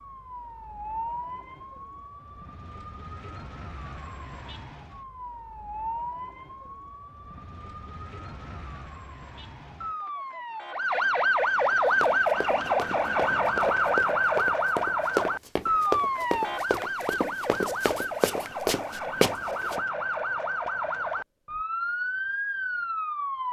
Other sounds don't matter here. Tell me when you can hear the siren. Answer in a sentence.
The siren can be heard from 0.0 to 23.4 s.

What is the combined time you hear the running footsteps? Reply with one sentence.
You can hear the running footsteps for 8 seconds altogether.